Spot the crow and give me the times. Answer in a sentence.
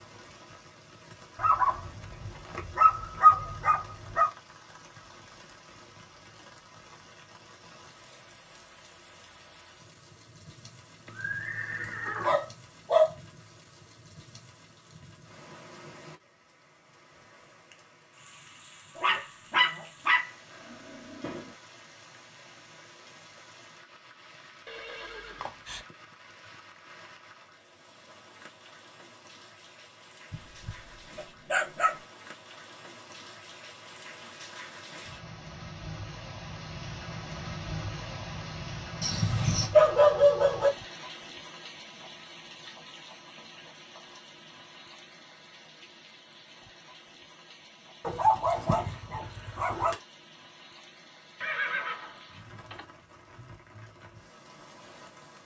You can't hear the crow here.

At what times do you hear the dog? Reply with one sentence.
You can hear the dog from 1.4 to 4.3 s, from 12.2 to 13.1 s, from 18.9 to 21.4 s, from 30.3 to 31.9 s, from 39.0 to 40.7 s and from 48.0 to 50.0 s.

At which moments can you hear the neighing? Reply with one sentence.
The neighing can be heard from 11.1 to 12.4 s, from 24.6 to 25.9 s and from 51.4 to 52.9 s.